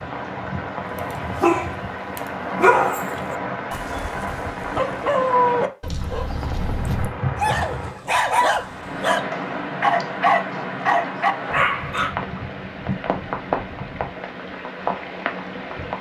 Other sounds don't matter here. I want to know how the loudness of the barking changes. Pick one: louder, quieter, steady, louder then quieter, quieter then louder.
quieter then louder.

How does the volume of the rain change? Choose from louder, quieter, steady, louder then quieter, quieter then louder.
steady.